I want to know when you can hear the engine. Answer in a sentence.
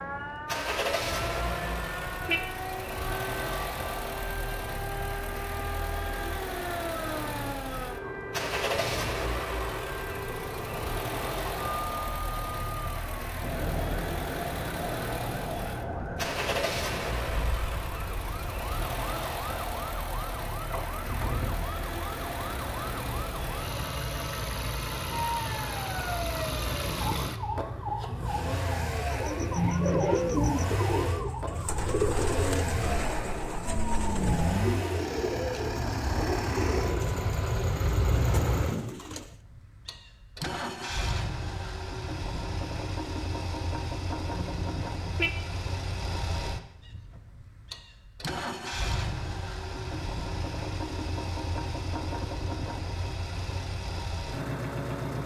You can hear the engine from 0.0 to 55.2 s.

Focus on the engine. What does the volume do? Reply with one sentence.
The volume of the engine stays about the same.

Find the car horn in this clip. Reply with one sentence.
The car horn can be heard from 1.4 to 2.5 s, from 29.6 to 30.4 s and from 44.4 to 45.4 s.